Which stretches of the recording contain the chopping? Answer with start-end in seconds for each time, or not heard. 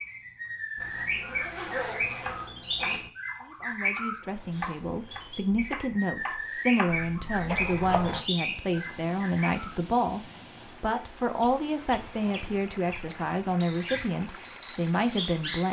2.2-8.1.